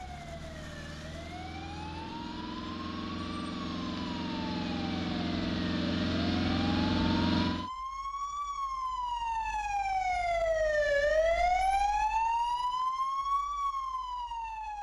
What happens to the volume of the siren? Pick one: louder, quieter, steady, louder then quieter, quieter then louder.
louder.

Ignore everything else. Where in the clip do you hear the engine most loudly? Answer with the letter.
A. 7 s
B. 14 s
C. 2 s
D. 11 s
A.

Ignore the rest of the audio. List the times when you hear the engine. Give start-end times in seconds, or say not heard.
0.0-7.7.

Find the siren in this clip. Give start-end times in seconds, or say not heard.
0.0-14.7.